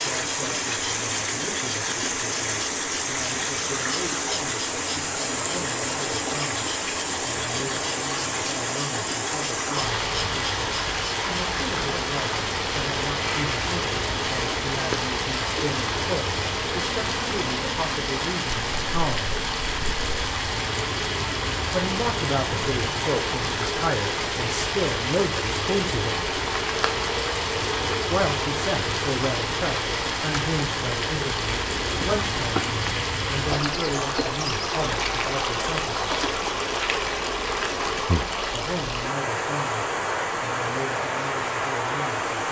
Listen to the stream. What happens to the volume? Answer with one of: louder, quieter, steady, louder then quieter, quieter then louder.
steady.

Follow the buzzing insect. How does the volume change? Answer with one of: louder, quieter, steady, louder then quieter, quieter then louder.
steady.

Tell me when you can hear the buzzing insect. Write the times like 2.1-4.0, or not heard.
0.0-38.1.